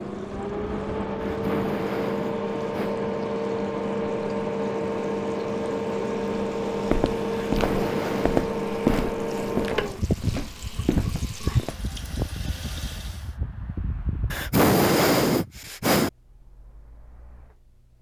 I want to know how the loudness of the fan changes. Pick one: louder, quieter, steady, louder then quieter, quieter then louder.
quieter.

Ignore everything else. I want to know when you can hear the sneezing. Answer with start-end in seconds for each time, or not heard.
1.2-3.0, 7.3-9.2, 14.3-16.1.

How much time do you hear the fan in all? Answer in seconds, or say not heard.
18 s.